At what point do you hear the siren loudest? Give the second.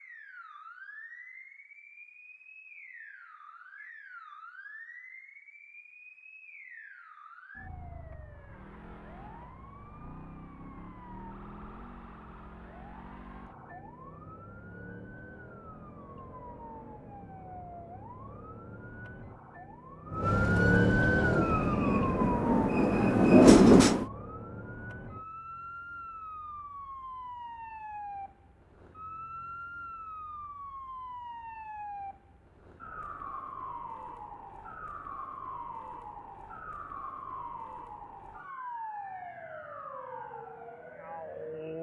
21 s.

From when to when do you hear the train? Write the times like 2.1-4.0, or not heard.
21.1-24.1.